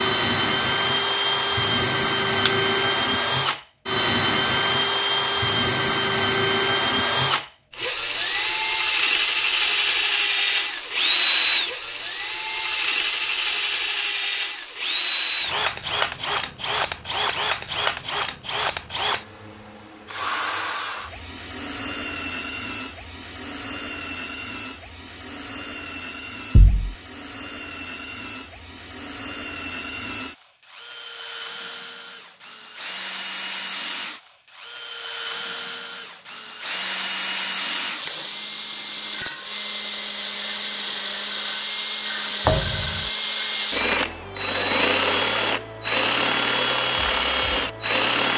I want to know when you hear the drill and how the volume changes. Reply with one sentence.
You can hear the drill from 0.0 to 48.3 s, getting quieter then louder.